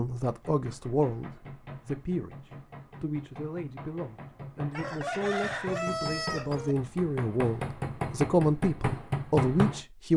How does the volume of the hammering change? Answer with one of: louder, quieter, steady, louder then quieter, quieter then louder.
louder.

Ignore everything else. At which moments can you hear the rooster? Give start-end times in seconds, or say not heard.
4.7-6.8.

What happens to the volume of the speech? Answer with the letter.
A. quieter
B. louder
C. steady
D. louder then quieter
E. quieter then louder
E.